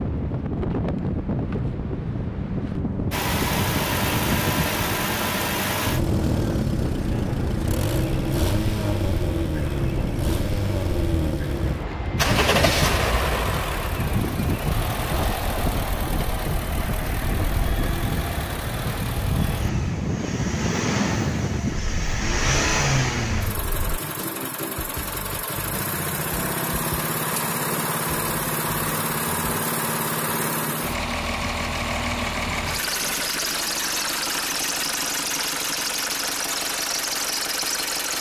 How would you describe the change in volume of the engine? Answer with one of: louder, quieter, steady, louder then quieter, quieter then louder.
steady.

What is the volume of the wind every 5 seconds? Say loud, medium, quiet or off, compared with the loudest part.
loud, loud, loud, loud, loud, off, off, off.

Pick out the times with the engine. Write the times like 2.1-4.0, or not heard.
3.1-38.1.